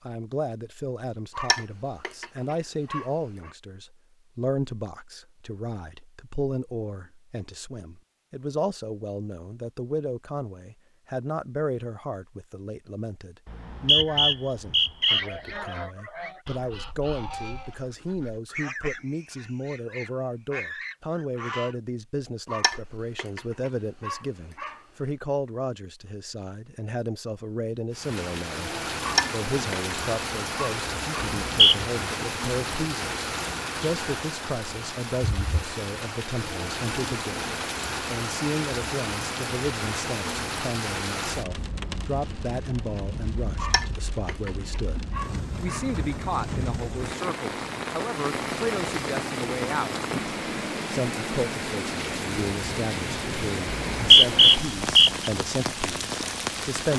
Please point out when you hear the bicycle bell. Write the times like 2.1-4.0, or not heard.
not heard.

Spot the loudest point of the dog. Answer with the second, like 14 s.
29 s.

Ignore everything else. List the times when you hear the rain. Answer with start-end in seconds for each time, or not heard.
27.9-56.9.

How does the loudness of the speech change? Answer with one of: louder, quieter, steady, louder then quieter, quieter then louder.
steady.